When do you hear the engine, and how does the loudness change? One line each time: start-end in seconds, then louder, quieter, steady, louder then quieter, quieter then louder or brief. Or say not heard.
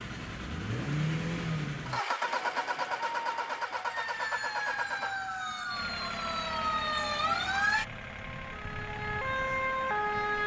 0.0-10.4 quieter.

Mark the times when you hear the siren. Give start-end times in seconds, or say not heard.
2.2-10.4.